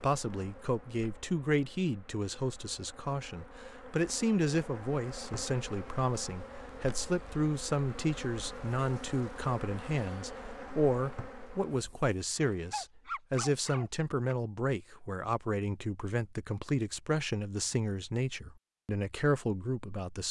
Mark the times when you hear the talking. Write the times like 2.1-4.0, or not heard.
0.0-20.2.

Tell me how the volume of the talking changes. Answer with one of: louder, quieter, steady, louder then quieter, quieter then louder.
steady.